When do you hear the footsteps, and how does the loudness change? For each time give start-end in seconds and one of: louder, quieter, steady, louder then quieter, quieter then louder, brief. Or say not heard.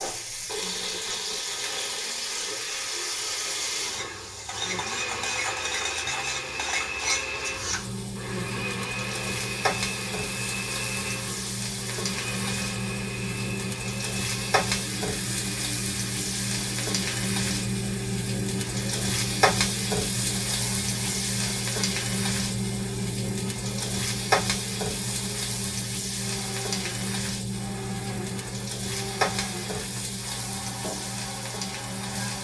not heard.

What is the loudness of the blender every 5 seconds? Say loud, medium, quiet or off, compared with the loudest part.
loud, loud, loud, medium, medium, medium, medium.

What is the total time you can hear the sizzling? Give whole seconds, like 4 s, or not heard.
32 s.